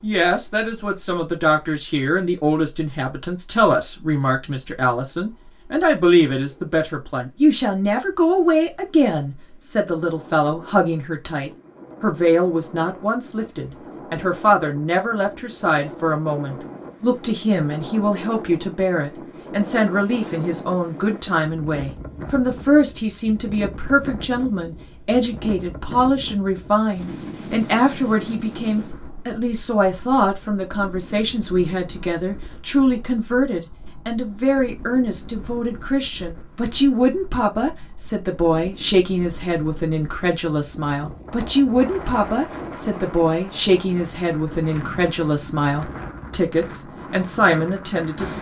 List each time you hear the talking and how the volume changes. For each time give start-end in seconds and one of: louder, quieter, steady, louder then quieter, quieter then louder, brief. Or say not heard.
0.0-48.3 steady.